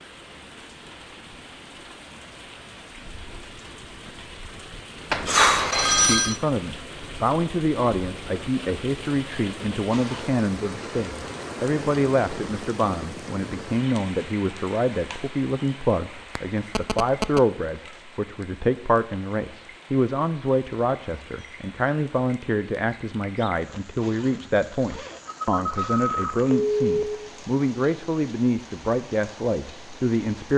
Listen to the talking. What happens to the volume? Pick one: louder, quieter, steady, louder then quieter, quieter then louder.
steady.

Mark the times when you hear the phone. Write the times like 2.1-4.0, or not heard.
5.1-6.3, 16.4-17.4, 25.2-27.3.